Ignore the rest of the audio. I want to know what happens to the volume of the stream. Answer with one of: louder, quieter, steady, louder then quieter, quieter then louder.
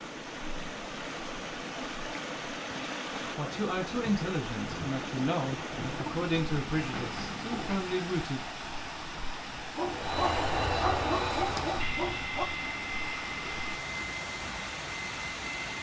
steady.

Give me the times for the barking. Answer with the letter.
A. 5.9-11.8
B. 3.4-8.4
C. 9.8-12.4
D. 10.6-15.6
C.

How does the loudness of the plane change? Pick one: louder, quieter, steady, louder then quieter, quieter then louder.
quieter.